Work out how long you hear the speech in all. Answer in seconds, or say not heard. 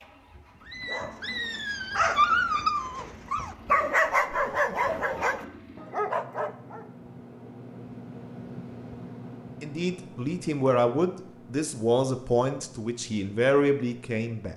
5 s.